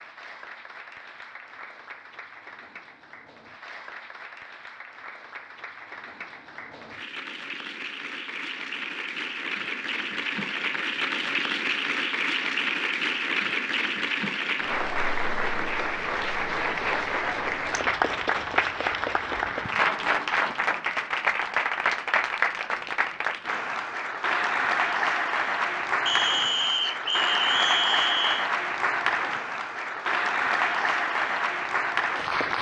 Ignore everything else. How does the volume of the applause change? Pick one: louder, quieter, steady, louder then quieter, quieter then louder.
louder.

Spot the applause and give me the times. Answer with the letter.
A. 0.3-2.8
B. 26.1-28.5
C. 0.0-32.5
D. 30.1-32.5
C.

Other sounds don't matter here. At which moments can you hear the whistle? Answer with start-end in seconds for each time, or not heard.
26.1-28.5.